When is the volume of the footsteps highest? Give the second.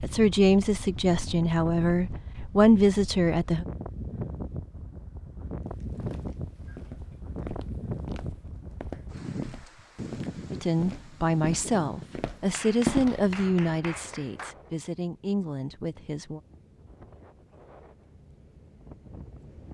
13 s.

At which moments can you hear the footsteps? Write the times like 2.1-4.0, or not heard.
5.7-13.2.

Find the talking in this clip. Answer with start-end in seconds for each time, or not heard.
0.0-3.6, 10.5-16.4.